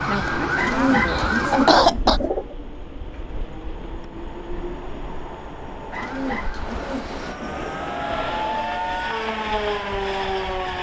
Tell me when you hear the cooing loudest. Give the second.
1 s.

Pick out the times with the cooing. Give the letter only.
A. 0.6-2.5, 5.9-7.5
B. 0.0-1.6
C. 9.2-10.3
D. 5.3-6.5
A.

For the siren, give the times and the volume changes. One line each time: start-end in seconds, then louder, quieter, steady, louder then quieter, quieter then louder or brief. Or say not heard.
0.0-1.9 brief
6.0-10.7 louder.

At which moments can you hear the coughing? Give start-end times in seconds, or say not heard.
1.1-2.2.